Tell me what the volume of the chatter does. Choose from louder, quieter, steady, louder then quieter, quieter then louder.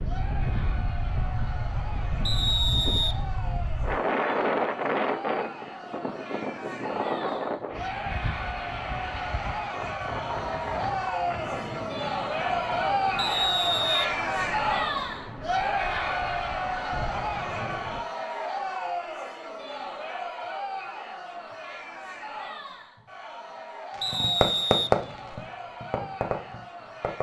louder then quieter.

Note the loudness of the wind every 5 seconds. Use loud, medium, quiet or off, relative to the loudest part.
loud, loud, medium, medium, off, off.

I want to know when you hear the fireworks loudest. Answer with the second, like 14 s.
25 s.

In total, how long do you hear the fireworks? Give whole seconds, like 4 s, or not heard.
3 s.